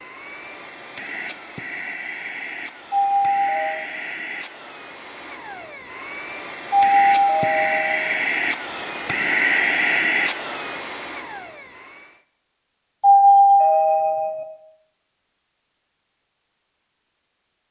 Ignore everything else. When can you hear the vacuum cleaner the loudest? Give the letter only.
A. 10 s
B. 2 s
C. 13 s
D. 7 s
A.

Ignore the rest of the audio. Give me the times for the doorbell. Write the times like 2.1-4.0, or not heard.
2.9-3.8, 6.7-8.2, 13.0-14.4.